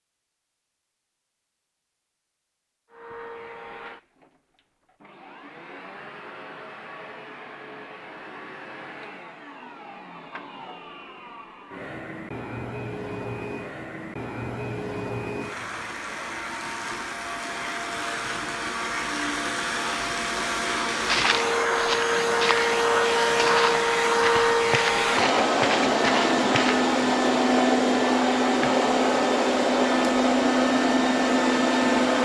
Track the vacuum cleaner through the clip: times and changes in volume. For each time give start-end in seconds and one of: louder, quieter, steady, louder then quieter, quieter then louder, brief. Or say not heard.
2.9-32.2 louder.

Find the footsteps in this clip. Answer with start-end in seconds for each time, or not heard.
21.1-26.9.